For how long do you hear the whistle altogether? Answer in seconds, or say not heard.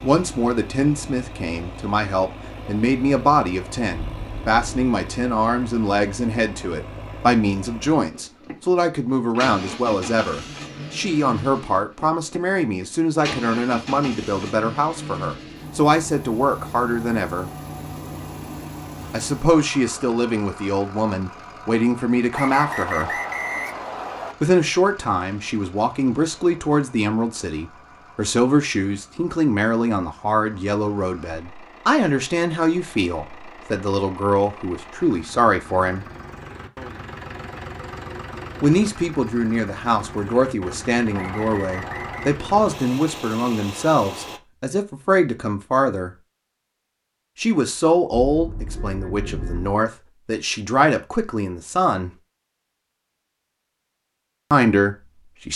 3 s.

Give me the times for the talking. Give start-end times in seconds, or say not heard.
0.0-17.5, 19.1-23.1, 24.4-36.0, 38.6-46.1, 47.4-52.1, 54.5-55.5.